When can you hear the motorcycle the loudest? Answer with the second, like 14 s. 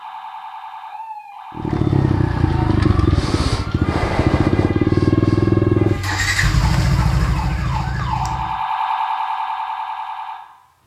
5 s.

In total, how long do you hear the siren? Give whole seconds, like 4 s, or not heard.
11 s.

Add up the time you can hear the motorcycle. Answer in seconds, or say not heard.
7 s.